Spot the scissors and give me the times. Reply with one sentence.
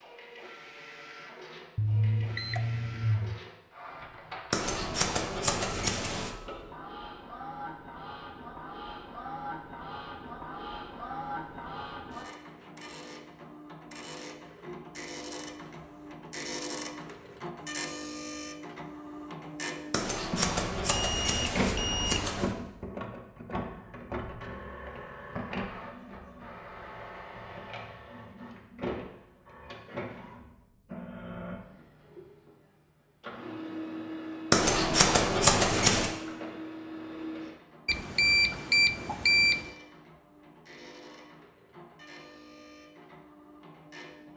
You can hear the scissors from 4.5 to 6.3 s, from 19.9 to 22.6 s and from 34.5 to 36.1 s.